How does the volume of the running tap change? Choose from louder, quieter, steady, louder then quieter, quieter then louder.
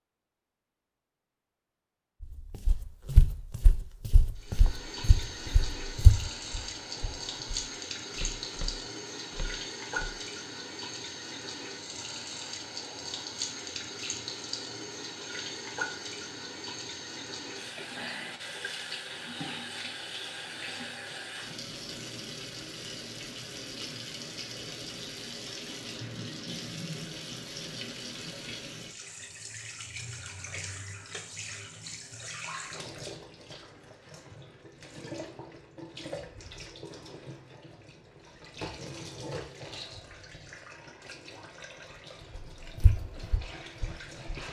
quieter.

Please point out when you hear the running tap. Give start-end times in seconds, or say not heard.
4.3-44.4.